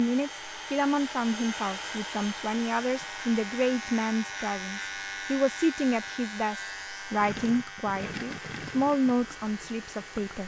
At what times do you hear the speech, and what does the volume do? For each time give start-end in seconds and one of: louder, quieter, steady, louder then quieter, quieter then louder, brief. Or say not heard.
0.0-10.4 steady.